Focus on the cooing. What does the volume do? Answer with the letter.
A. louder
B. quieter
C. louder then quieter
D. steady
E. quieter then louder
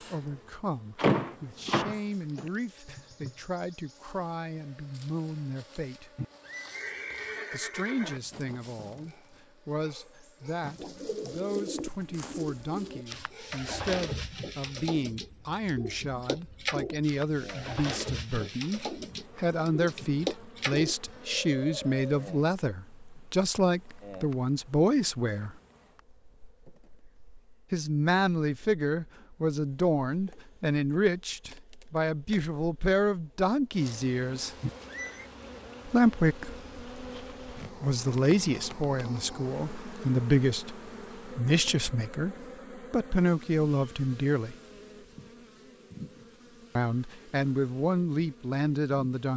D.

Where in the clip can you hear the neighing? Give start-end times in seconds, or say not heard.
6.2-8.2, 34.6-35.3.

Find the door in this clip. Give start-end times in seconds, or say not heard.
0.9-2.5.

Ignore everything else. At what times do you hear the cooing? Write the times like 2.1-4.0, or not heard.
10.8-22.6.